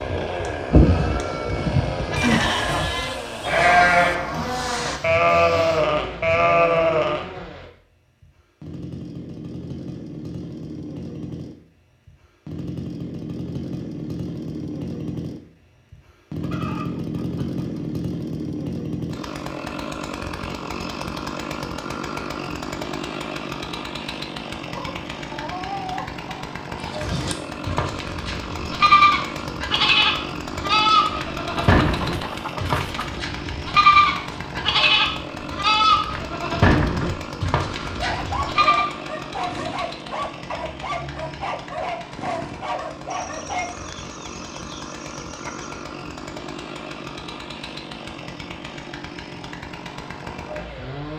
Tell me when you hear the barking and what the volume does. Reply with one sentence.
You can hear the barking from 38.0 to 44.0 s, at a steady volume.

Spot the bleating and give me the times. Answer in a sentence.
You can hear the bleating from 0.0 to 7.2 s and from 26.8 to 38.9 s.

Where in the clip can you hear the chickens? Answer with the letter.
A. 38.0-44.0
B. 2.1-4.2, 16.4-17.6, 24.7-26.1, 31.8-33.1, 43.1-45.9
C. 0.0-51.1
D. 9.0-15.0
B.